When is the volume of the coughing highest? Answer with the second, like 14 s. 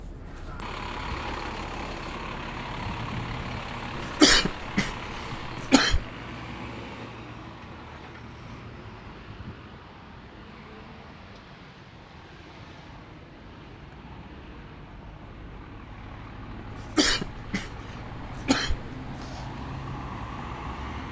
4 s.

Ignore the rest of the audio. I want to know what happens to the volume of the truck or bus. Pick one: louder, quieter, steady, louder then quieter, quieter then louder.
quieter then louder.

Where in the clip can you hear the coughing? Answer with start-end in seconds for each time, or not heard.
4.0-6.0, 16.7-19.4.